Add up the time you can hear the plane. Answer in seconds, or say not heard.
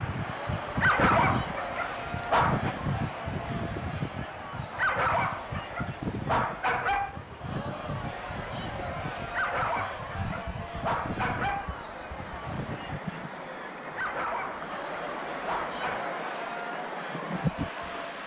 not heard.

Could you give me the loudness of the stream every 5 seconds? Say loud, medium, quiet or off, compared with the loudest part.
medium, medium, medium, loud.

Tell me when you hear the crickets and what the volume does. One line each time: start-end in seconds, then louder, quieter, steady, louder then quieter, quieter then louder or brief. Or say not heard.
0.0-13.0 quieter.